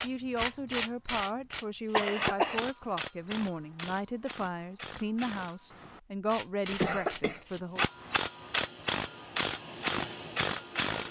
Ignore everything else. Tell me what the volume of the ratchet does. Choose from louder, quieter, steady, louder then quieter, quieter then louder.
quieter then louder.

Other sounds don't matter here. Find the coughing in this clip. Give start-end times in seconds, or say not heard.
1.9-2.6, 6.7-7.4.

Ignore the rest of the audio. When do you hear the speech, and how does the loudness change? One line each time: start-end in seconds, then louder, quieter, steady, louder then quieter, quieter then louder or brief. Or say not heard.
0.0-7.8 steady.